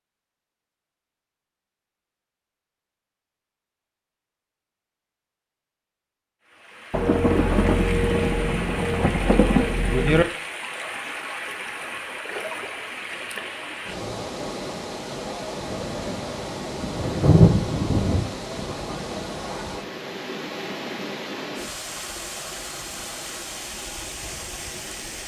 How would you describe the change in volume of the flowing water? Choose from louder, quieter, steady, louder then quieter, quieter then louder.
steady.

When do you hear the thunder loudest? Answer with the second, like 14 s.
17 s.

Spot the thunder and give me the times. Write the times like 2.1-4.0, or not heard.
6.9-10.2, 15.6-18.3.